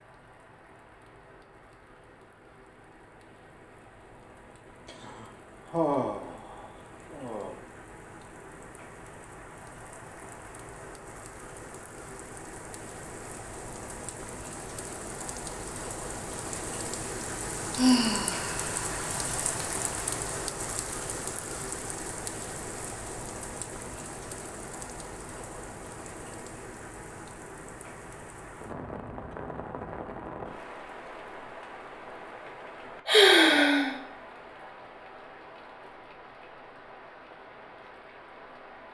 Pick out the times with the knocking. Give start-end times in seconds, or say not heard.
not heard.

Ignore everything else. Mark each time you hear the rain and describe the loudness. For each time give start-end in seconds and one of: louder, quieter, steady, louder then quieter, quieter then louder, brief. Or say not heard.
0.0-38.8 louder then quieter.